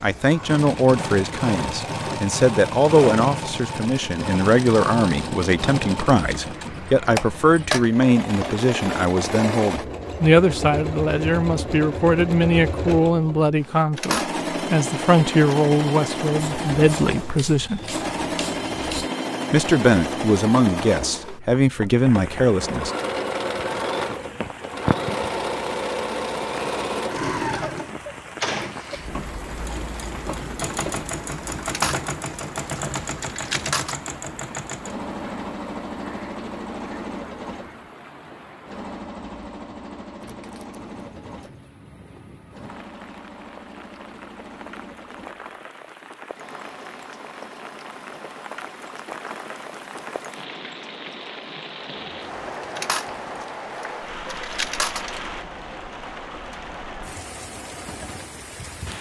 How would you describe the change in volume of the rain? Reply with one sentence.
The volume of the rain goes down, then up.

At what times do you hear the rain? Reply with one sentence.
You can hear the rain from 21.9 to 58.9 s.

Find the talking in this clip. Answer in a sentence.
You can hear the talking from 0.0 to 17.8 s and from 19.5 to 22.9 s.